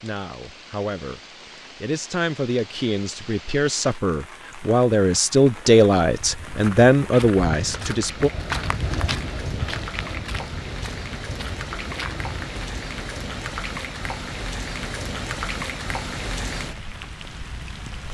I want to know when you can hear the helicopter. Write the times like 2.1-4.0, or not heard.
not heard.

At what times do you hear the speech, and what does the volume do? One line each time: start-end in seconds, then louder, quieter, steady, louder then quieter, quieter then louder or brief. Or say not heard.
0.0-8.3 louder.